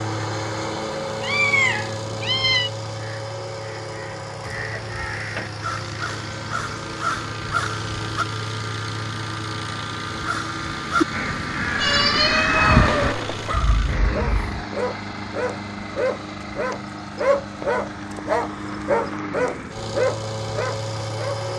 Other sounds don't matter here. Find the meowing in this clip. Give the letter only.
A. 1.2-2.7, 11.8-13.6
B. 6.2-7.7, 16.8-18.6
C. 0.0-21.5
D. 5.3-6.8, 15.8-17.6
A.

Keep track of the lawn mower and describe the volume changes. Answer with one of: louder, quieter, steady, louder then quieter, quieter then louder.
steady.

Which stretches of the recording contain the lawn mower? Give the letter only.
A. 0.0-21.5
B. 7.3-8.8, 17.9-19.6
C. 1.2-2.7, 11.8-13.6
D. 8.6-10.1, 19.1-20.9
A.